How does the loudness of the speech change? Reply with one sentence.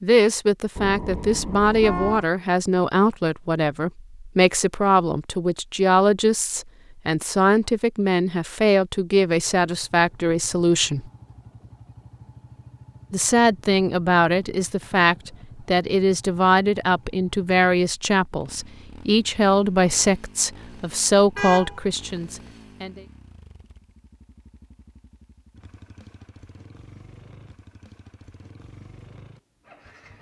The loudness of the speech stays about the same.